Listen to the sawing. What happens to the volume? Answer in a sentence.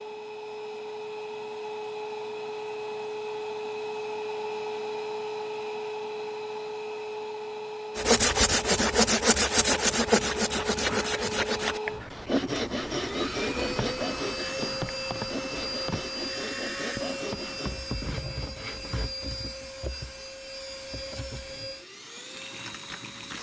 The volume of the sawing goes down.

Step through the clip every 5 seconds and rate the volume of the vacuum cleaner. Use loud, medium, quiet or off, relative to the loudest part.
loud, loud, loud, loud, medium.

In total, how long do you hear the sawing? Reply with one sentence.
The sawing can be heard for 11 seconds in total.